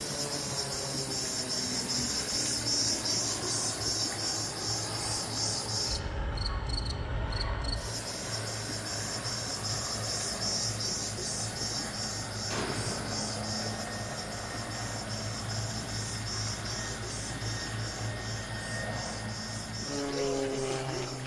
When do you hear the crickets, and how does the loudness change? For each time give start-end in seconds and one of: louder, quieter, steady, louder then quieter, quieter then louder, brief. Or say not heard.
0.0-21.2 quieter.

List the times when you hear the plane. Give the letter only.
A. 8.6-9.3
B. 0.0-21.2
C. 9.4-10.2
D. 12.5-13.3
B.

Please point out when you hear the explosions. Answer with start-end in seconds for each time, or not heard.
12.5-13.3.